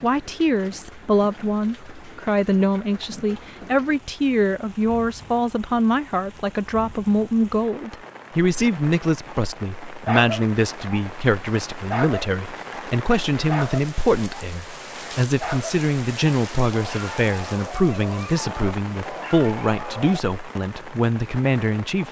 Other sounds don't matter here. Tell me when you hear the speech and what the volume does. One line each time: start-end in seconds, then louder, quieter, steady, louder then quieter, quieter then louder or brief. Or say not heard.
0.0-22.0 steady.